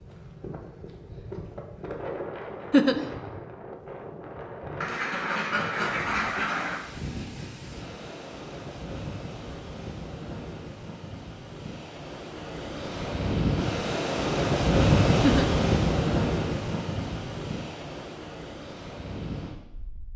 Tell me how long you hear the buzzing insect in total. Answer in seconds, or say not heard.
not heard.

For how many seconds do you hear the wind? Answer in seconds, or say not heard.
20 s.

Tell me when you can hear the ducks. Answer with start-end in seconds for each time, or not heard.
4.8-6.8.